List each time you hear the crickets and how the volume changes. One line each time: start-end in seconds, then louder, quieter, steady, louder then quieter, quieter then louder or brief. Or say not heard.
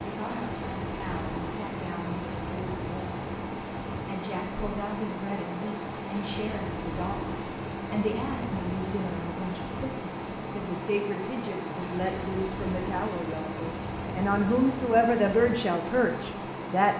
0.0-16.9 steady.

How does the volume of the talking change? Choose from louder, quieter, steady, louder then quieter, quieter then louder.
louder.